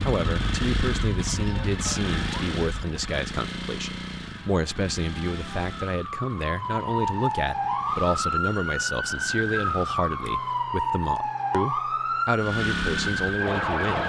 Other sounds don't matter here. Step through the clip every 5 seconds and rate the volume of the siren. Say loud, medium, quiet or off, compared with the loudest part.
medium, loud, loud.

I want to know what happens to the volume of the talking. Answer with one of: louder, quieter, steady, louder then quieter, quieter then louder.
steady.